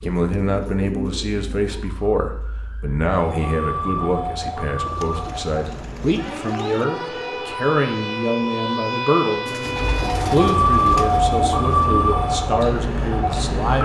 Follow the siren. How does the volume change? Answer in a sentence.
The volume of the siren goes up.